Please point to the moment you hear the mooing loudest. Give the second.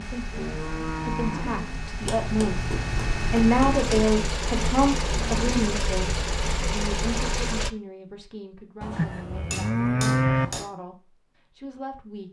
10 s.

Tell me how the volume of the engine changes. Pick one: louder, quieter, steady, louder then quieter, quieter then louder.
louder.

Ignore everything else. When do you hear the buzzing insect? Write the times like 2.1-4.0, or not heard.
not heard.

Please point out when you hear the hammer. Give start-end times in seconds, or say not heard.
2.0-4.0, 8.8-10.7.